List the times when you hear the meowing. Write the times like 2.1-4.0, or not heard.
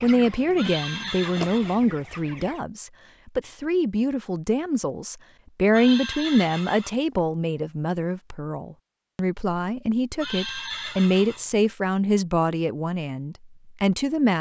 not heard.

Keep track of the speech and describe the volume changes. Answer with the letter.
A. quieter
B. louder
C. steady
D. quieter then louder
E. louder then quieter
C.